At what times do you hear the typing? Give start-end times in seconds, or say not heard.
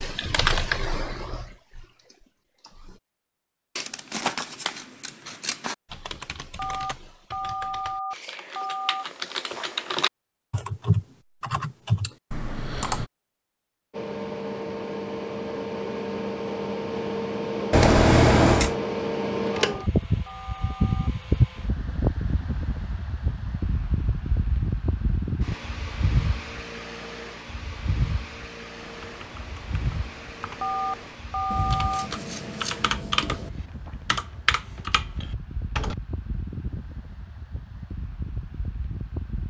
0.0-3.0, 5.8-13.1, 28.8-36.0.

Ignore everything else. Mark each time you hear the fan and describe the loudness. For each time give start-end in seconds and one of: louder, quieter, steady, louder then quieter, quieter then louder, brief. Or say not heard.
13.9-39.4 quieter.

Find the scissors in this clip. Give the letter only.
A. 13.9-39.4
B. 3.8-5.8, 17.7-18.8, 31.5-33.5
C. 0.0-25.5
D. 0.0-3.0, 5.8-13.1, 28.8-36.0
B.